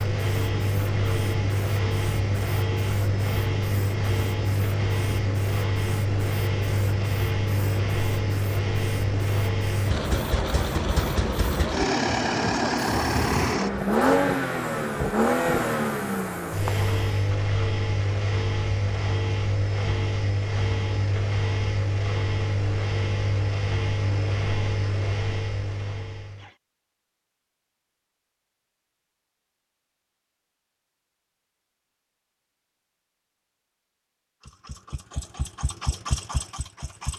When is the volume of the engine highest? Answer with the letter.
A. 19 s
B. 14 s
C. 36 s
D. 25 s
B.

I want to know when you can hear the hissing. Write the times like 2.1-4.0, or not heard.
0.0-17.1.